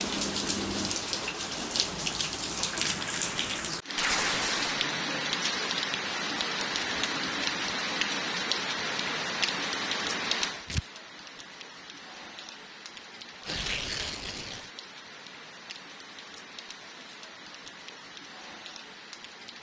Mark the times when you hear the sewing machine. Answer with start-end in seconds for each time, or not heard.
not heard.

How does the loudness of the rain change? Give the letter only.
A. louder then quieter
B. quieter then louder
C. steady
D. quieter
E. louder
D.